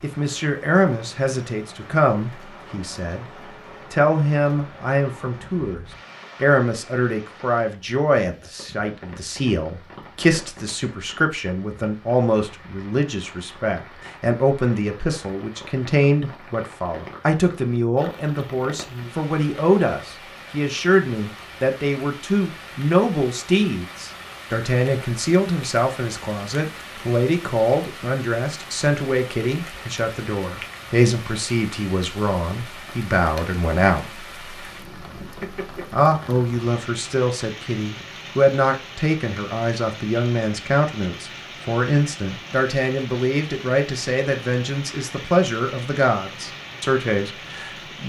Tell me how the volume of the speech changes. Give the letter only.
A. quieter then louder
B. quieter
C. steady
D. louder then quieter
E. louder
C.